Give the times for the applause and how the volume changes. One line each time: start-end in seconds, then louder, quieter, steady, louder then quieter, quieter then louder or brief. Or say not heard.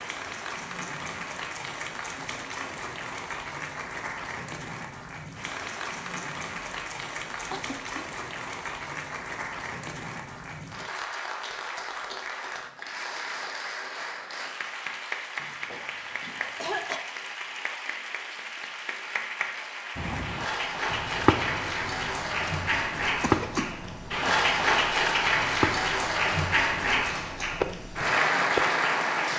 0.0-29.3 louder.